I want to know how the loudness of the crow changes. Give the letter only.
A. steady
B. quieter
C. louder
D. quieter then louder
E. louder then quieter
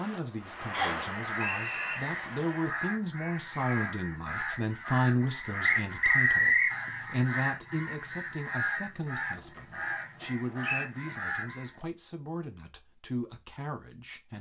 A.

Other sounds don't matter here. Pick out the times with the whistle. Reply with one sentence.
You can hear the whistle from 0.7 to 2.0 s, from 5.7 to 6.8 s and from 10.2 to 10.8 s.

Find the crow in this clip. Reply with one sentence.
The crow can be heard from 1.0 to 11.8 s.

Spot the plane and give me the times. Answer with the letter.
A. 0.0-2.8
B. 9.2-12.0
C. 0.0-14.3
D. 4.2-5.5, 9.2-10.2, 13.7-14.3
A.